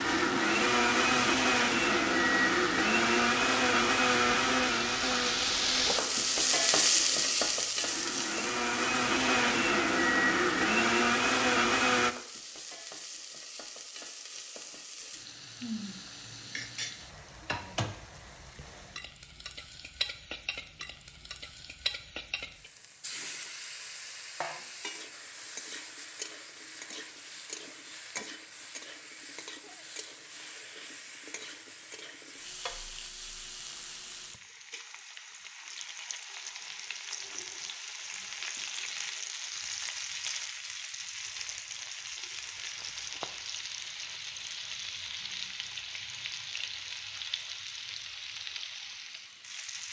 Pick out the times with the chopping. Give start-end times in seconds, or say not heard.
not heard.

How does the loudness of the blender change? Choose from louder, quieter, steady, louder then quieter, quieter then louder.
quieter then louder.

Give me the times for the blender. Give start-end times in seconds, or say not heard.
0.0-12.2.